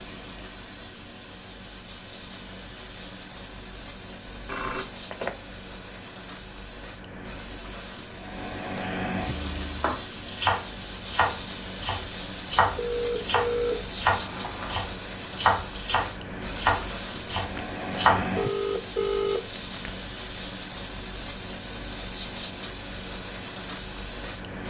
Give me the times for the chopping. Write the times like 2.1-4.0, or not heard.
9.3-18.3.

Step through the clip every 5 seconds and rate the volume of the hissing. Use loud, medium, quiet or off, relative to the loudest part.
medium, loud, loud, loud, loud.